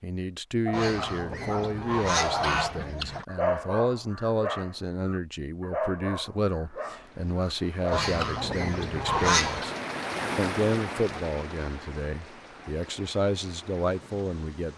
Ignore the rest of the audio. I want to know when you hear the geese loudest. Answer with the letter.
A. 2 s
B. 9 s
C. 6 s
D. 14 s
B.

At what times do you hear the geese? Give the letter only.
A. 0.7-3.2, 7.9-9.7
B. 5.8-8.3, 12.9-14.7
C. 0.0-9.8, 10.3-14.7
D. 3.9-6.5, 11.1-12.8
A.